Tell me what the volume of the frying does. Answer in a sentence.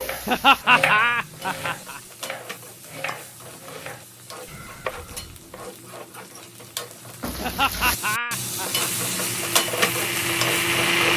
The loudness of the frying goes up.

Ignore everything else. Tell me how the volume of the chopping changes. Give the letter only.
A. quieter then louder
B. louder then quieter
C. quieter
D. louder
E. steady
A.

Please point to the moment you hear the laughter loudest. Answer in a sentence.
The volume of the laughter peaks at 1 second.